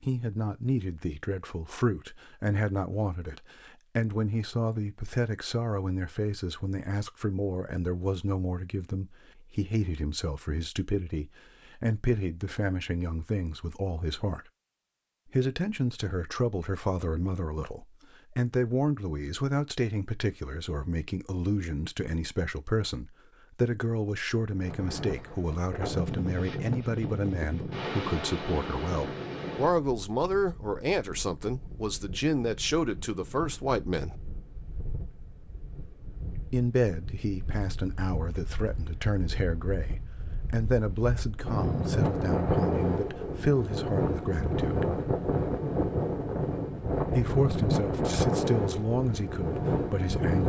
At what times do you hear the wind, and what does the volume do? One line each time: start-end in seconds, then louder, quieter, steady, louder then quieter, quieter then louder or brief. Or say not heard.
24.6-50.4 quieter then louder.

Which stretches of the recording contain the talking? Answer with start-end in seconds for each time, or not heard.
0.0-14.4, 15.3-34.1, 36.5-44.9, 47.0-50.4.